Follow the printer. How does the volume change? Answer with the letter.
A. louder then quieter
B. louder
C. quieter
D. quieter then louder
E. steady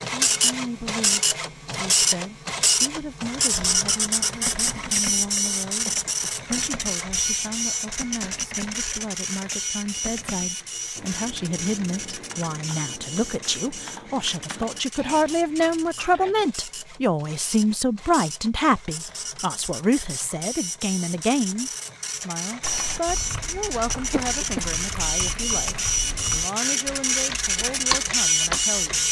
D.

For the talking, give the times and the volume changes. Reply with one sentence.
The talking can be heard from 0.1 to 29.0 s, getting louder then quieter.